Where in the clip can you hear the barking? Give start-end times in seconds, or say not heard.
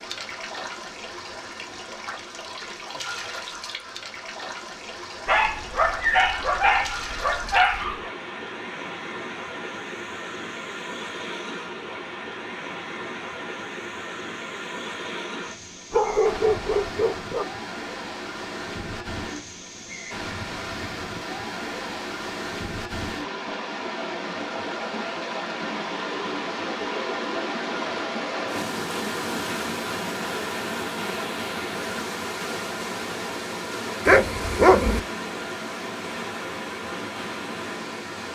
5.2-8.1, 15.9-17.4, 34.0-35.0.